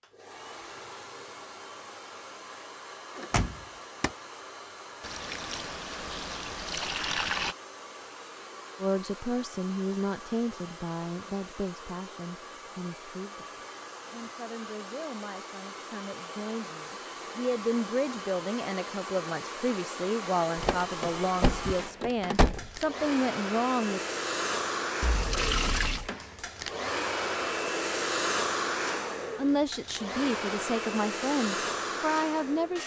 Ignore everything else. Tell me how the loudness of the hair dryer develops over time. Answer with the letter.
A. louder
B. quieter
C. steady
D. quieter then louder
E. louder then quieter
A.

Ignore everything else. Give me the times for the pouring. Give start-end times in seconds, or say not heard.
5.0-7.5, 25.0-26.1.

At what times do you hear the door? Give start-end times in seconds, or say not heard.
3.1-4.1, 20.6-22.9.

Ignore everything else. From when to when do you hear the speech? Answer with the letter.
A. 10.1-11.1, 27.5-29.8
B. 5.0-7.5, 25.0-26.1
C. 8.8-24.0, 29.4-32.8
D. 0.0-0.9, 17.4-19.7
C.